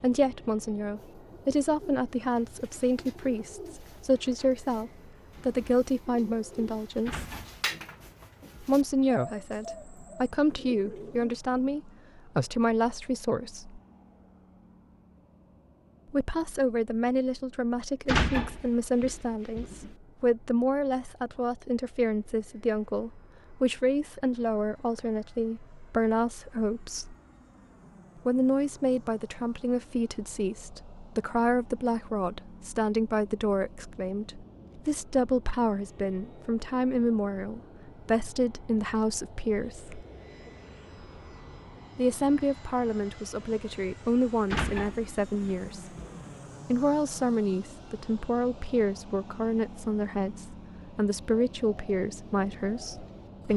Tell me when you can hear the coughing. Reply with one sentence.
You can't hear the coughing here.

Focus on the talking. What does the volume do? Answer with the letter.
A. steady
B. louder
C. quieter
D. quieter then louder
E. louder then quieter
A.